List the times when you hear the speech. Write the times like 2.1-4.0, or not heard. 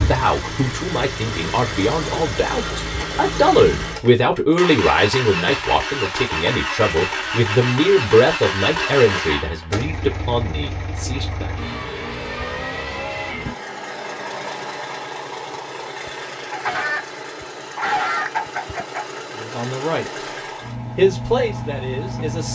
0.1-11.5, 19.4-20.1, 20.9-22.5.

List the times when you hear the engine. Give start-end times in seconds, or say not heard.
0.0-22.5.